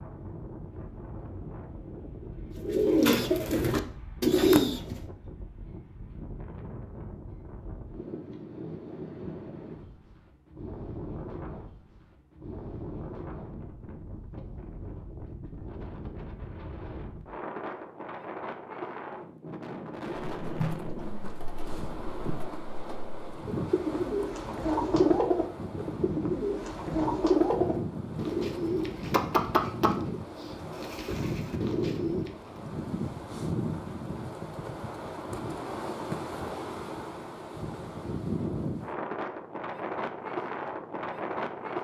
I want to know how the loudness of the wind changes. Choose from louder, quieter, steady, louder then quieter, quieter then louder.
louder.